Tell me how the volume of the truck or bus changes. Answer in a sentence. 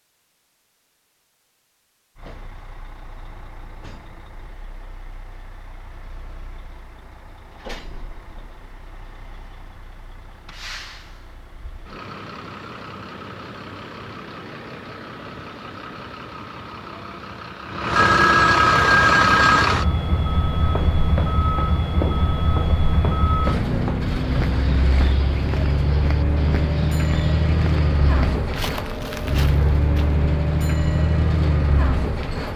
The volume of the truck or bus goes up.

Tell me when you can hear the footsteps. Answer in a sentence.
You can hear the footsteps from 20.6 to 30.2 s.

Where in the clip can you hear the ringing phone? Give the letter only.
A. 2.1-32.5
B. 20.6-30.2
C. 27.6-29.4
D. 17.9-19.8
D.